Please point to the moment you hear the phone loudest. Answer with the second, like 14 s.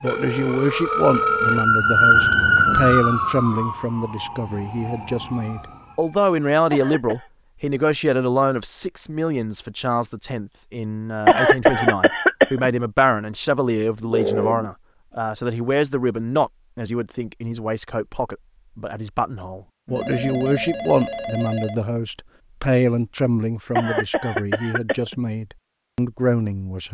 14 s.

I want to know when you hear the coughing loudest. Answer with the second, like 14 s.
12 s.